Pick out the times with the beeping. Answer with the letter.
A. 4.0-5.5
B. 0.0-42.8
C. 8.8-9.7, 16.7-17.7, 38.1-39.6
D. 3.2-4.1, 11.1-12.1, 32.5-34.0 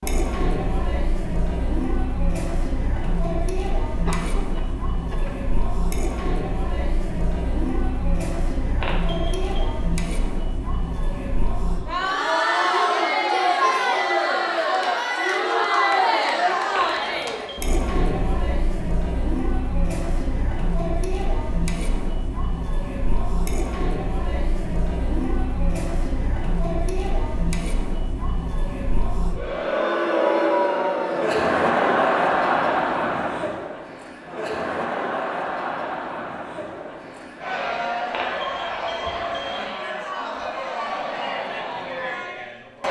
C.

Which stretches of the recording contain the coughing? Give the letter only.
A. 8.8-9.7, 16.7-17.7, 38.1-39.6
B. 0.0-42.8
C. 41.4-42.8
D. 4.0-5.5
D.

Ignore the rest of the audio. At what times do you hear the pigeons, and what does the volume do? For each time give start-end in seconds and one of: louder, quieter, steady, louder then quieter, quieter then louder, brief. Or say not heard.
not heard.